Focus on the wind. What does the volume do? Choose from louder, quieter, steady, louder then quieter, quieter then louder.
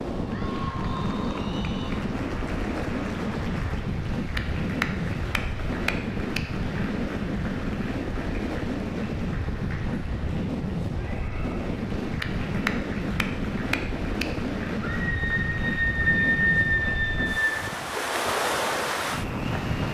steady.